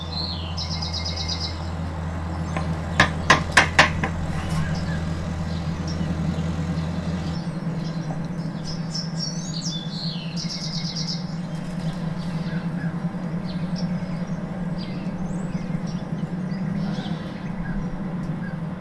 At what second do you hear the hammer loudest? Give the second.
3 s.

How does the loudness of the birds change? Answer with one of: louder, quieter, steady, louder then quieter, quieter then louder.
steady.